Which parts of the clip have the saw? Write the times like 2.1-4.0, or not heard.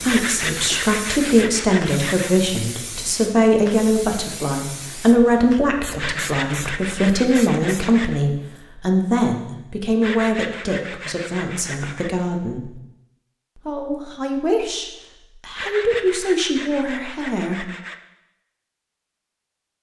0.1-2.4, 6.0-8.2, 10.0-12.1, 15.6-17.9.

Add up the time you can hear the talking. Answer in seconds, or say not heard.
17 s.